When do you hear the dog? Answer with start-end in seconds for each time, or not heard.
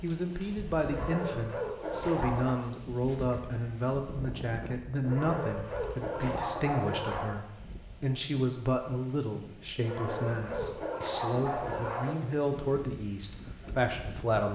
0.8-2.5, 5.0-7.3, 9.8-12.2.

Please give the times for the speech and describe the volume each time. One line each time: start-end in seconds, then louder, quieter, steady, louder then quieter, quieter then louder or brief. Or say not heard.
0.0-14.4 steady.